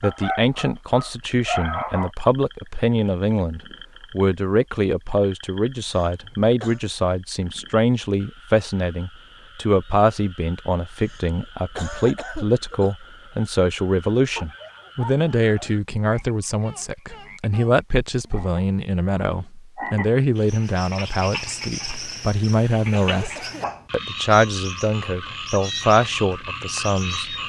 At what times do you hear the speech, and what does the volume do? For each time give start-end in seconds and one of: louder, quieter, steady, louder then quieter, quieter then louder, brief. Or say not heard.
0.0-27.4 steady.